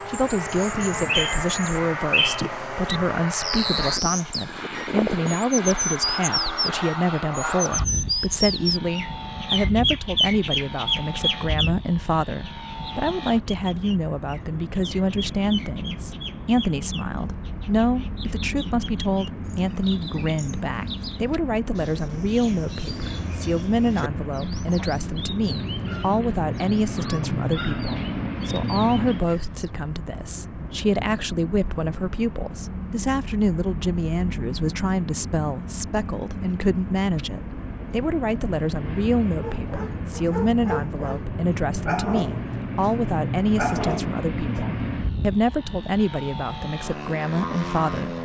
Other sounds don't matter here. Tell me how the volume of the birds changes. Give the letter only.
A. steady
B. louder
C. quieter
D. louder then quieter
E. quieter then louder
C.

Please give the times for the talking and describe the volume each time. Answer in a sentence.
The talking can be heard from 0.1 to 48.1 s, at a steady volume.